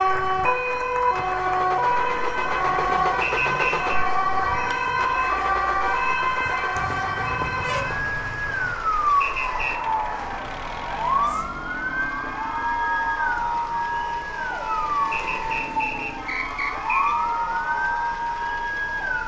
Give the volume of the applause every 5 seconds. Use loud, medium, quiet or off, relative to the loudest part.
medium, medium, loud, loud.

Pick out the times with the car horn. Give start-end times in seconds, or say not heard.
6.8-8.8.